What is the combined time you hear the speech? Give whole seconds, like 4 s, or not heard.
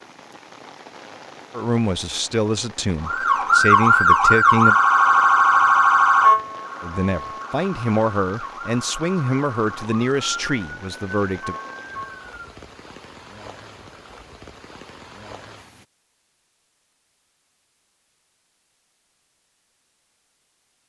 8 s.